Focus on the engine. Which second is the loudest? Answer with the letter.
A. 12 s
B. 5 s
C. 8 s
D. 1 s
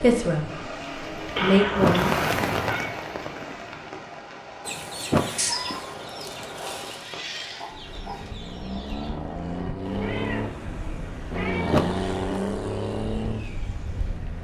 A.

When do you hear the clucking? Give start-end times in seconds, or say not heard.
4.6-9.2.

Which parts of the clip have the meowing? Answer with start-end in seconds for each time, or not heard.
1.4-2.9, 5.3-5.9, 9.8-12.2.